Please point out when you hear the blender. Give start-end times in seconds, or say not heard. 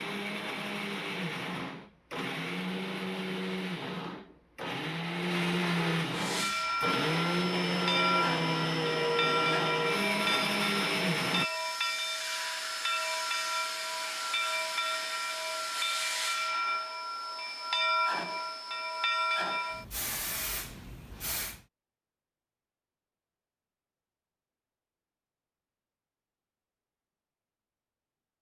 0.0-11.4.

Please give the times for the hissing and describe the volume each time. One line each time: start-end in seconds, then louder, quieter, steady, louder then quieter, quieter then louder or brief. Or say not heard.
6.1-21.6 steady.